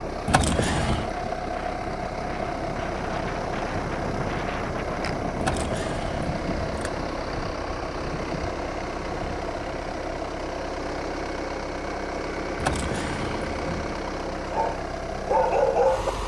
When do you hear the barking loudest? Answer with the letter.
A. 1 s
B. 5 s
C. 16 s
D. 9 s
C.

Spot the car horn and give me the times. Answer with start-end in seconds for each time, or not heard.
not heard.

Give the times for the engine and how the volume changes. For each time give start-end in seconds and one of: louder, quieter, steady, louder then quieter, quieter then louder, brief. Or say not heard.
0.0-16.2 steady.